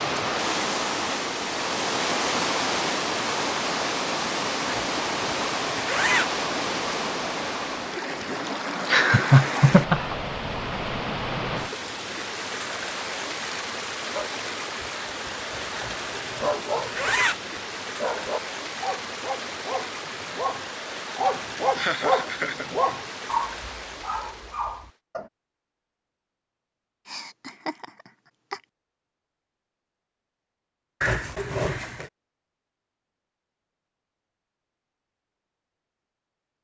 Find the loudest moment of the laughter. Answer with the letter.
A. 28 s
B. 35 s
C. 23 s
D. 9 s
D.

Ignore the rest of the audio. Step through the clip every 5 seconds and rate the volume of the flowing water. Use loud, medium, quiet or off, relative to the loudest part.
loud, loud, medium, medium, medium, off, off, off.